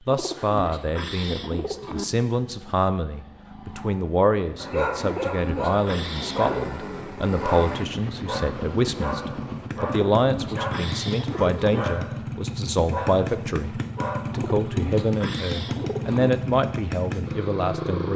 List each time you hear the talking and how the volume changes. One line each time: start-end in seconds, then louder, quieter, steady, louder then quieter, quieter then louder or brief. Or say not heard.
0.1-18.1 steady.